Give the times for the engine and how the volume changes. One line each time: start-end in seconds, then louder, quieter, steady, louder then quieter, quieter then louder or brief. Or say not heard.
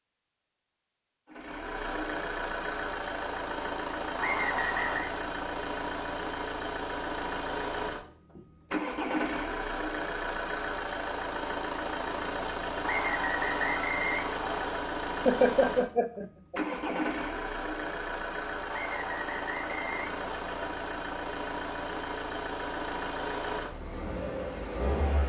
1.3-25.2 steady.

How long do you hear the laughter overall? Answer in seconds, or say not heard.
2 s.